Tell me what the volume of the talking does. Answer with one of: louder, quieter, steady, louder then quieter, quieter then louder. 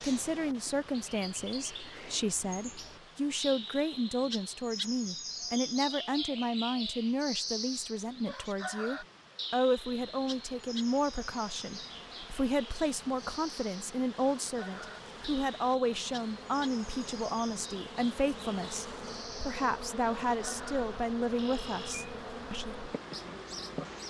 steady.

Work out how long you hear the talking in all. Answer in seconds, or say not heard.
23 s.